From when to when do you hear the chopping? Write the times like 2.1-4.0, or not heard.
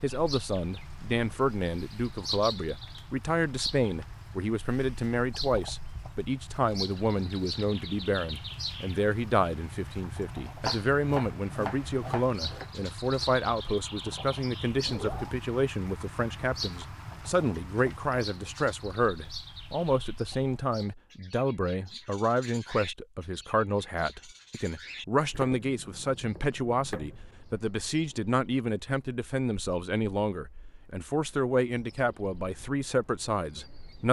10.7-12.7, 25.3-27.2.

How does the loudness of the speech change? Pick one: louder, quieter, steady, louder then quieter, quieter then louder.
steady.